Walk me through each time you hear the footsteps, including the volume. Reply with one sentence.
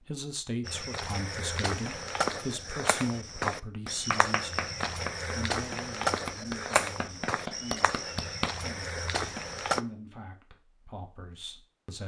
You can hear the footsteps from 0.7 to 9.8 s, at a steady volume.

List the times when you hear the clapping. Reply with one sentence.
You can hear the clapping from 3.9 to 8.5 s.